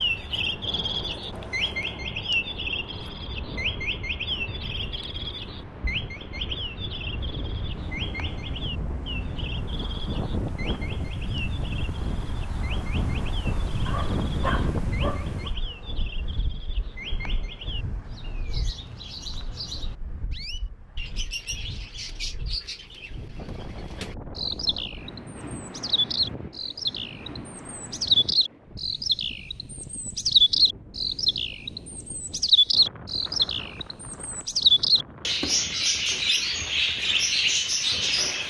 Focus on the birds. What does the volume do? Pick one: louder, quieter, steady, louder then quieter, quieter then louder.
quieter then louder.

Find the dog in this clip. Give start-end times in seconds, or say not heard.
13.8-15.5.